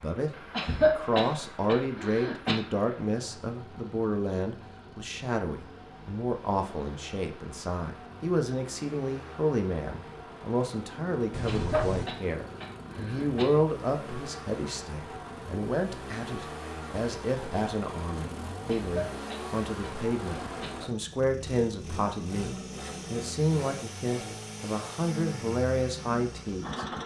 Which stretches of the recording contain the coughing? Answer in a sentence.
The coughing can be heard from 0.5 to 2.5 s, from 11.4 to 13.4 s and from 18.6 to 20.7 s.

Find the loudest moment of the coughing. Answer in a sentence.
The volume of the coughing peaks at 1 second.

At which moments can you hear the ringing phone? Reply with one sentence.
The ringing phone can be heard from 11.3 to 12.1 s.